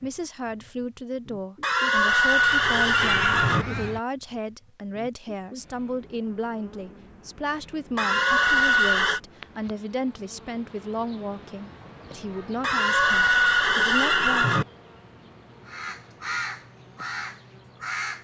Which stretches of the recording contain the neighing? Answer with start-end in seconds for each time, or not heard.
1.6-3.6, 8.0-9.2, 12.6-14.7.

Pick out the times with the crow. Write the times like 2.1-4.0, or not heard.
2.3-4.0, 15.7-18.1.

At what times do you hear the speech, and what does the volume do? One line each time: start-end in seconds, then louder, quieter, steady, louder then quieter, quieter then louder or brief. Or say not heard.
0.0-14.6 steady.